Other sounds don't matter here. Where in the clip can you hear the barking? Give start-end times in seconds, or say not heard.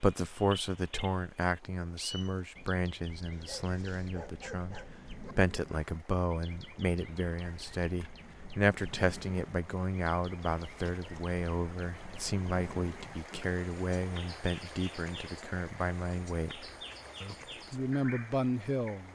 3.3-5.3.